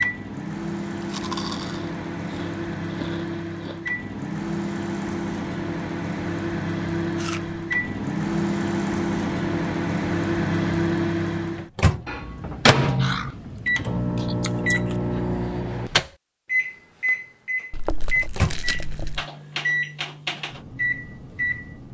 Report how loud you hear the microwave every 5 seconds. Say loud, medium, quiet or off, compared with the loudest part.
medium, loud, loud, loud, medium.